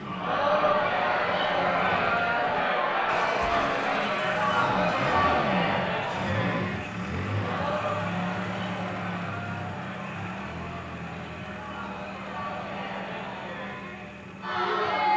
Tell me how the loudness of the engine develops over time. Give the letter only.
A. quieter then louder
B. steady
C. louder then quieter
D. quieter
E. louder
C.